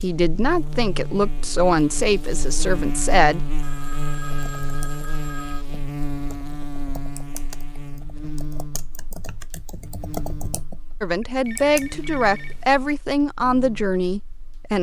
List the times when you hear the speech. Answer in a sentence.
You can hear the speech from 0.0 to 3.4 s and from 11.0 to 14.7 s.